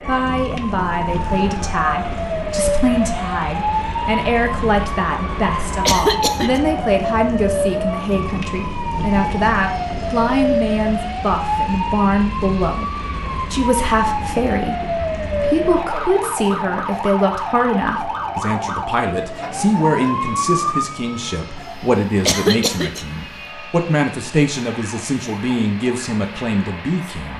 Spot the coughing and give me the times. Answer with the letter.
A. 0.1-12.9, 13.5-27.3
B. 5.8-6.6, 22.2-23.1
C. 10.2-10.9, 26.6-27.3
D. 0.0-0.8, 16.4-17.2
B.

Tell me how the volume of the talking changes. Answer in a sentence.
The loudness of the talking stays about the same.